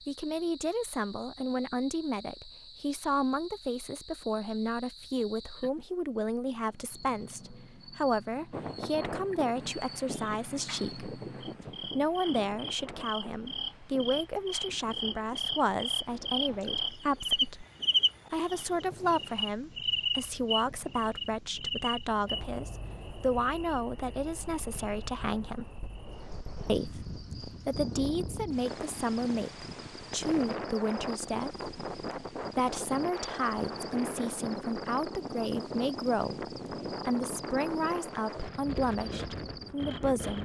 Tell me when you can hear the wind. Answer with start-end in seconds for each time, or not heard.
8.5-40.4.